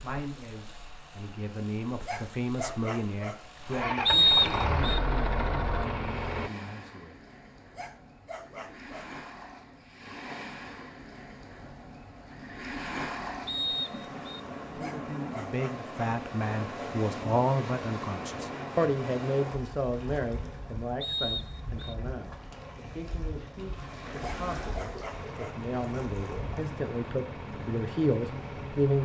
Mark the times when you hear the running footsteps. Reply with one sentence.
You can't hear the running footsteps here.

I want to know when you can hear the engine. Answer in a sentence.
The engine can be heard from 0.0 to 6.5 s and from 25.1 to 28.9 s.